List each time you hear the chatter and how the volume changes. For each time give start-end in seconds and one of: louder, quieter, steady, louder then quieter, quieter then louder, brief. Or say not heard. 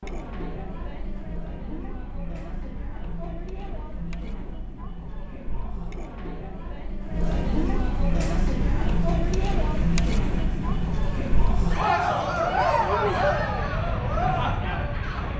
0.0-15.3 louder.